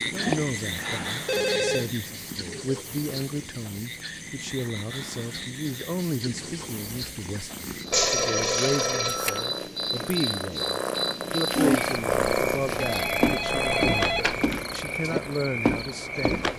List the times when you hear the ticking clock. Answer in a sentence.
You can't hear the ticking clock here.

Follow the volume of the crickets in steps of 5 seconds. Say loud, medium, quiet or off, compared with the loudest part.
medium, medium, loud, loud.